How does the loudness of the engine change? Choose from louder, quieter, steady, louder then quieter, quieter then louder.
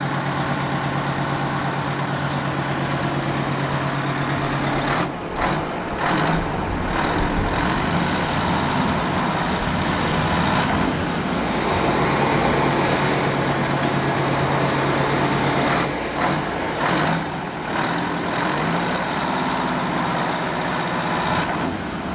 steady.